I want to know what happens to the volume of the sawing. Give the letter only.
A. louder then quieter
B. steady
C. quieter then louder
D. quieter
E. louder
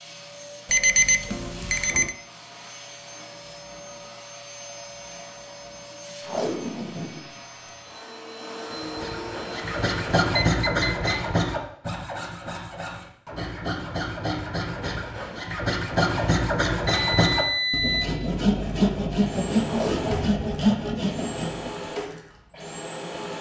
C.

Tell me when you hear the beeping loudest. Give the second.
1 s.